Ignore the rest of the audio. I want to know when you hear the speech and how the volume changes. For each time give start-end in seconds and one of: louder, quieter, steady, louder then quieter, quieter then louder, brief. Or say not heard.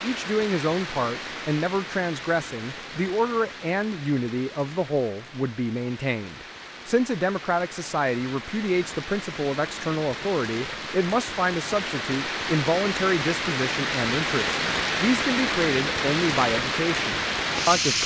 0.0-18.0 steady.